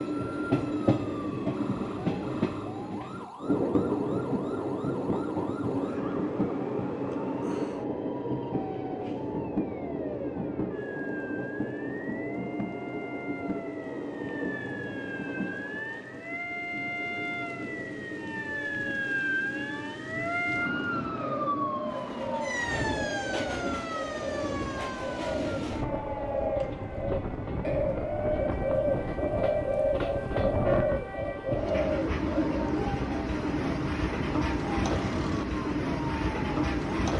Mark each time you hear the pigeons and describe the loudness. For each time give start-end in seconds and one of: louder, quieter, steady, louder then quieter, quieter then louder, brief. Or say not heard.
21.0-32.6 louder.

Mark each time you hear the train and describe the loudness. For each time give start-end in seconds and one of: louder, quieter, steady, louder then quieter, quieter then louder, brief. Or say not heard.
0.0-37.1 quieter then louder.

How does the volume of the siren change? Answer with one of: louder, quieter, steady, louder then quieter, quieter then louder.
louder then quieter.